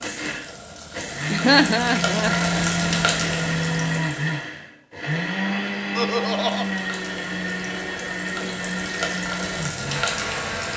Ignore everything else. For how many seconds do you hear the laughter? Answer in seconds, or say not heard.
2 s.